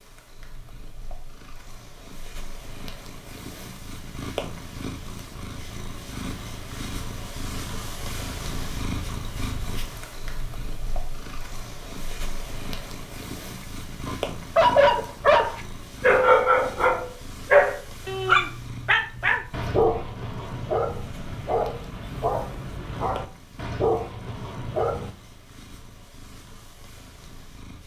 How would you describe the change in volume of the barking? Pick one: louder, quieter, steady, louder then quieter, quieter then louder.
quieter.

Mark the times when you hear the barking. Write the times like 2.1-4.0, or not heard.
14.1-25.1.